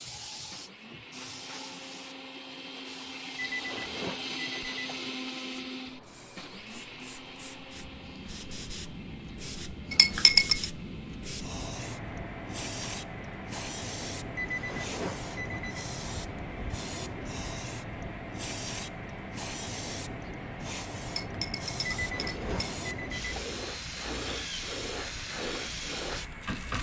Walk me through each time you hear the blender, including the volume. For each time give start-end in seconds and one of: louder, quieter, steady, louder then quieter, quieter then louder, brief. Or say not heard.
0.0-26.7 quieter.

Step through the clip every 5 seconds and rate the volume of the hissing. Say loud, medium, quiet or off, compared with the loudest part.
medium, medium, loud, loud, loud, loud.